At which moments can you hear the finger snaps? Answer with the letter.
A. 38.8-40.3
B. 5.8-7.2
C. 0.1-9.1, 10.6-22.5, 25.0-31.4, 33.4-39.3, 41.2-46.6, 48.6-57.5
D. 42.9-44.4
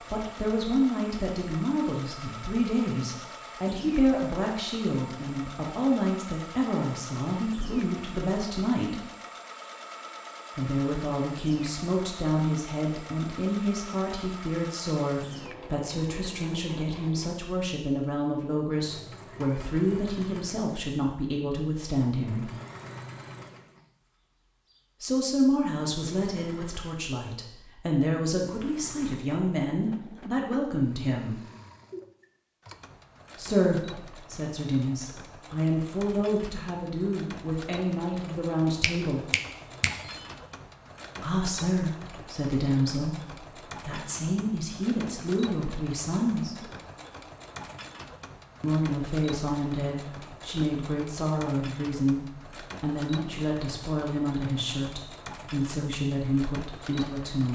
A.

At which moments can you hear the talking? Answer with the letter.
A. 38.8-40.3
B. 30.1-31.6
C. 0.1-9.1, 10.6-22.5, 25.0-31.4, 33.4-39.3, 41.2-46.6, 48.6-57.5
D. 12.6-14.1
C.